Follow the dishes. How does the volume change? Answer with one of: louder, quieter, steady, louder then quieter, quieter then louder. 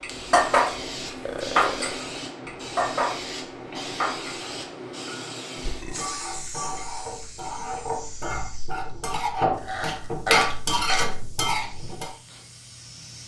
quieter then louder.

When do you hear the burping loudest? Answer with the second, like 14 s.
10 s.